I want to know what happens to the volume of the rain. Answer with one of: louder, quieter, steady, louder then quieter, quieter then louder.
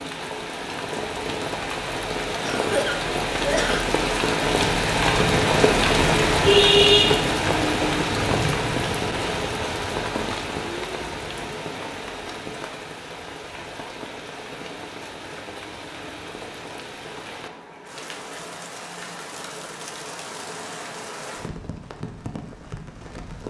louder then quieter.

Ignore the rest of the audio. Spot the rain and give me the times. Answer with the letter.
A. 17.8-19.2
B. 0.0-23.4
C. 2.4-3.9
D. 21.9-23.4
B.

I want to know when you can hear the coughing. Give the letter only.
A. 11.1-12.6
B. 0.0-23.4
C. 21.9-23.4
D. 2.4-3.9
D.